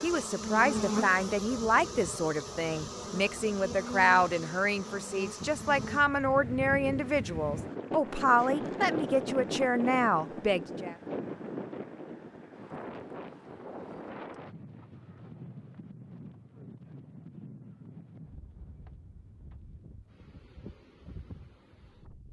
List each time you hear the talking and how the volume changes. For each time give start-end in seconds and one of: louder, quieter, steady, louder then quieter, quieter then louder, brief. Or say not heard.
0.0-10.9 steady.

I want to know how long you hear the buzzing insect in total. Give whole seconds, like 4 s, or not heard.
6 s.